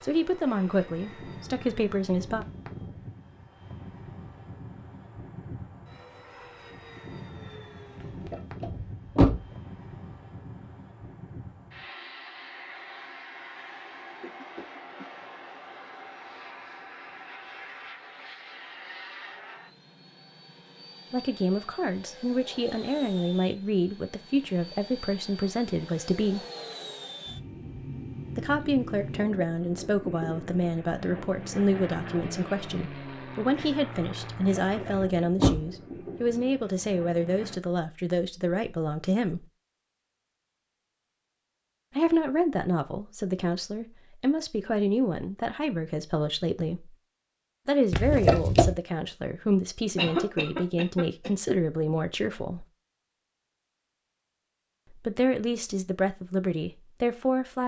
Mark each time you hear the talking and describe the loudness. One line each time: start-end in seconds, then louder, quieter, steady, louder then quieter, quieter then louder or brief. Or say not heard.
0.0-2.5 brief
21.1-26.4 steady
28.4-39.5 steady
42.0-47.0 steady
47.6-52.6 steady
54.9-57.6 brief.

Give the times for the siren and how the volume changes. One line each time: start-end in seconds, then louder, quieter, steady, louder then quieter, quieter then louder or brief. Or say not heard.
not heard.